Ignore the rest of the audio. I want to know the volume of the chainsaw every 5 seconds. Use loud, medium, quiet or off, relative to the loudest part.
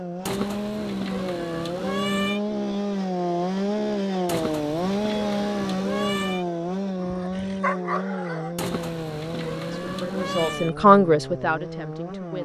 loud, loud, medium.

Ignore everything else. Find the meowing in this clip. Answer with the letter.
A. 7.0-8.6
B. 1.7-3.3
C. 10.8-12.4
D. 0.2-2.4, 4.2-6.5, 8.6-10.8
D.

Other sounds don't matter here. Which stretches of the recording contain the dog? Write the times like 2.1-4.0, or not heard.
7.0-8.6.